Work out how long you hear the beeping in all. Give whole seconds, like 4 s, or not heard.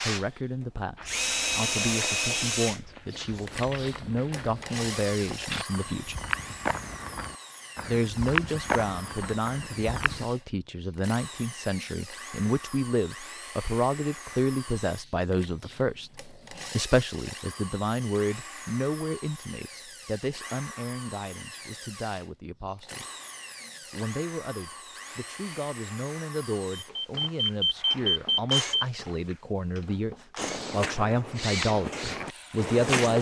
2 s.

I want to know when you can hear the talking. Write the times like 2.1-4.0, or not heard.
0.0-6.2, 7.8-23.1, 23.9-33.1.